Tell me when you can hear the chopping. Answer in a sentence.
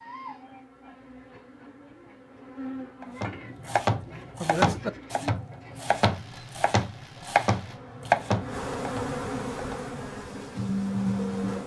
The chopping can be heard from 3.0 to 9.8 s.